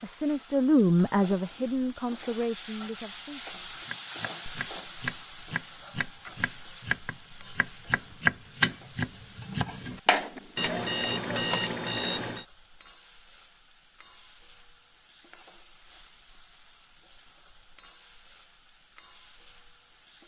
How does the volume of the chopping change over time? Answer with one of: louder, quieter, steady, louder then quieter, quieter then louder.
louder then quieter.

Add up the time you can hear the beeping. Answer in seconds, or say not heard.
2 s.